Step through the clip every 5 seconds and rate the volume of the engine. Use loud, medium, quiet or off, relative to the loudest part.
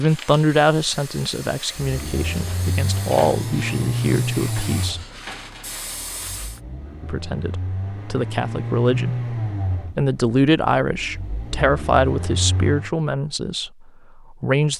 loud, loud, medium.